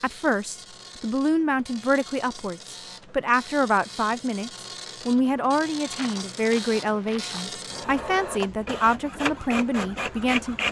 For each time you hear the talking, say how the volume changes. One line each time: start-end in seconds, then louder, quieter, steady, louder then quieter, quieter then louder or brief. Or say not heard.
0.0-10.6 steady.